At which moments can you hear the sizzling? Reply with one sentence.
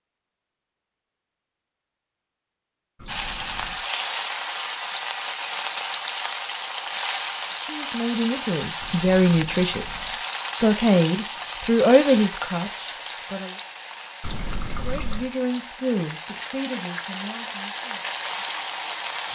You can hear the sizzling from 3.0 to 19.2 s.